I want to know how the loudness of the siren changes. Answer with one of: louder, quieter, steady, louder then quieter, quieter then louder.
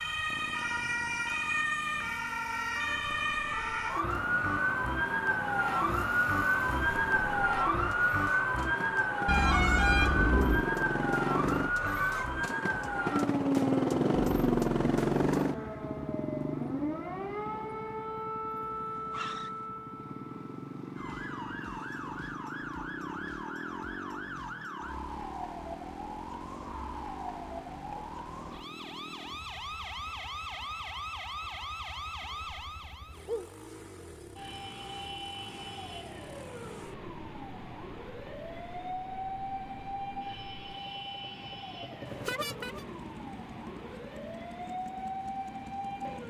quieter.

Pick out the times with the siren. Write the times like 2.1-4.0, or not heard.
0.0-46.2.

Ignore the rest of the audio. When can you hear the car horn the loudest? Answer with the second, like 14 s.
10 s.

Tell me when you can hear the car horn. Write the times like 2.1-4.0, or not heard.
9.2-10.7, 42.0-42.9.